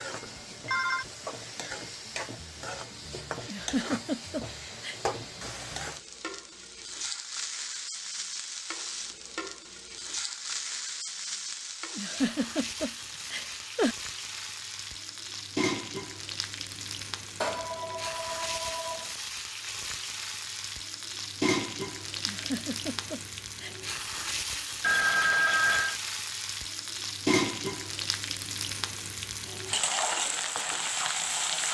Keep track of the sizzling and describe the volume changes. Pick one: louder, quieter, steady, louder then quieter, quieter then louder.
louder.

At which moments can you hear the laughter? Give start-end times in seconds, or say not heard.
3.5-5.0, 11.9-13.9, 22.2-23.8.